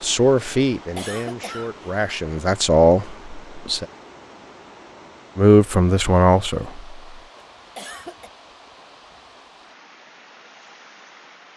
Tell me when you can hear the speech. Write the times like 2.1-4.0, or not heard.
0.0-3.9, 5.3-6.9.